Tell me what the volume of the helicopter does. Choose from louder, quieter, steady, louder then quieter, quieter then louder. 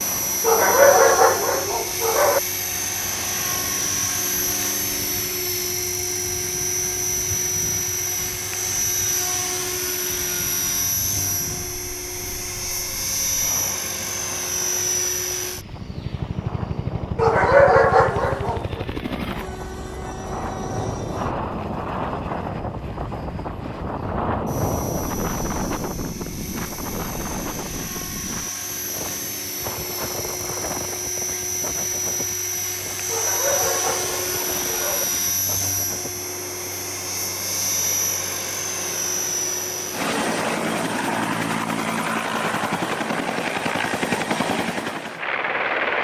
quieter then louder.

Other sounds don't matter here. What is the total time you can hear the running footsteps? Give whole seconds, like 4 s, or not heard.
not heard.